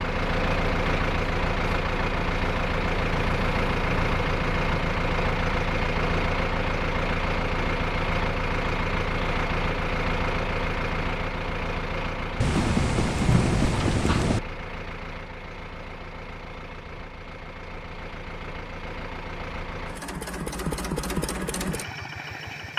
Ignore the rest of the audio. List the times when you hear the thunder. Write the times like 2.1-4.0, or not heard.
12.4-14.4.